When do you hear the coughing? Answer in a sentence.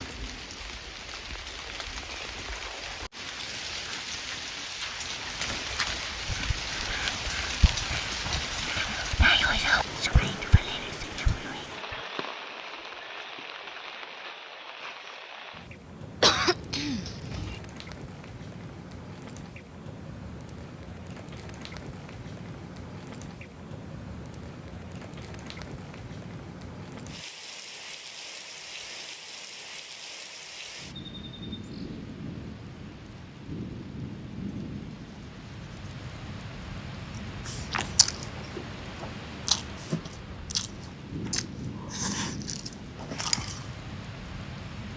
The coughing can be heard from 16.2 to 17.6 s.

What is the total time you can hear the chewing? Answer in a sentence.
You can hear the chewing for 6 seconds altogether.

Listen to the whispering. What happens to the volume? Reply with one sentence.
The loudness of the whispering goes up, then down.